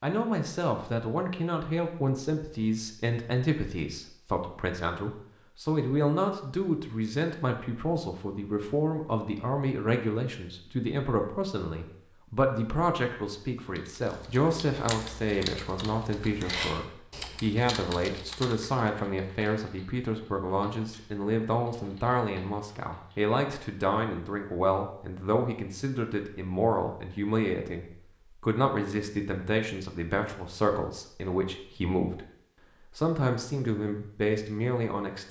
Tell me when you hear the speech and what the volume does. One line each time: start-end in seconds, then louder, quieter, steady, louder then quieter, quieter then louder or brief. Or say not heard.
0.0-35.2 steady.